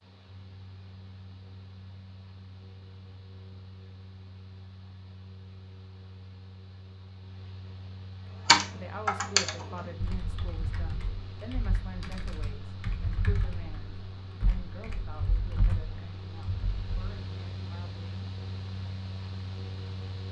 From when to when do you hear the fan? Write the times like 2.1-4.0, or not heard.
0.0-20.2.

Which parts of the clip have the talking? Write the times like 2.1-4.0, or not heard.
8.2-18.2.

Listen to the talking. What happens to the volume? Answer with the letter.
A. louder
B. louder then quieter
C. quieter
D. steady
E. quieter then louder
C.